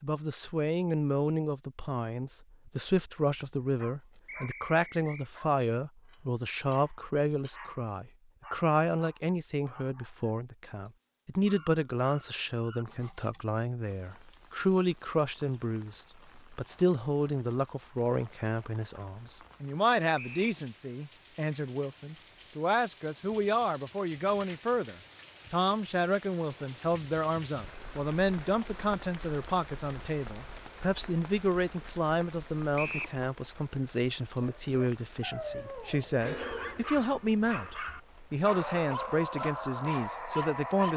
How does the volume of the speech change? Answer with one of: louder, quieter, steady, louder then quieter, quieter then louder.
steady.